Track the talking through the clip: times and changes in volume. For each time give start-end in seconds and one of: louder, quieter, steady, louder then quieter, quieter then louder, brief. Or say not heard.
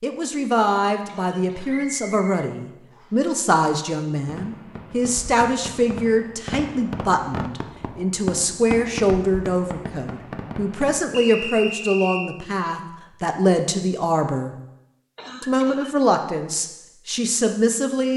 0.0-14.6 steady
15.4-18.1 brief.